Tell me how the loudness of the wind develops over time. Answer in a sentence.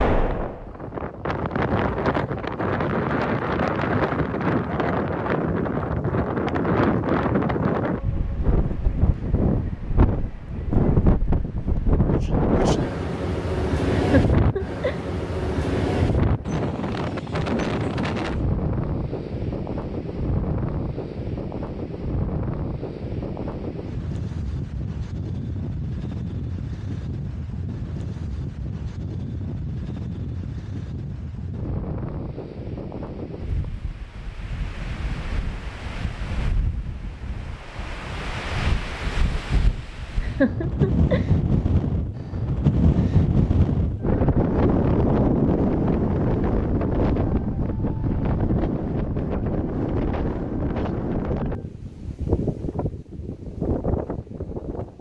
The loudness of the wind goes down, then up.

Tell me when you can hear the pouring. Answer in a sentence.
You can't hear the pouring here.